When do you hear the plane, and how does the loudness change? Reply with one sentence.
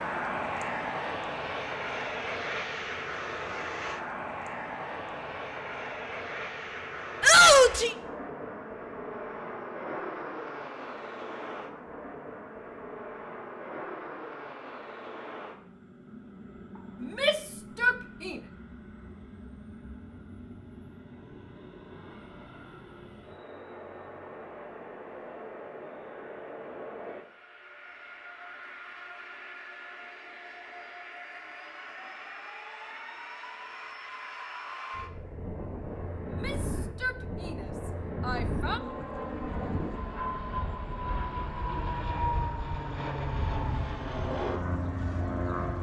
You can hear the plane from 0.0 to 45.7 s, getting quieter then louder.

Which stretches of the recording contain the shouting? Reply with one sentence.
The shouting can be heard from 7.2 to 8.0 s, from 17.0 to 18.4 s and from 36.2 to 38.8 s.